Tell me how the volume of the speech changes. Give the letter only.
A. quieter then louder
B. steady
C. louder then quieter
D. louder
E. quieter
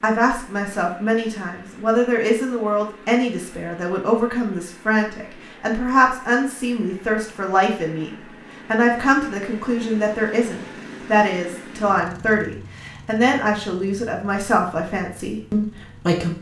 B.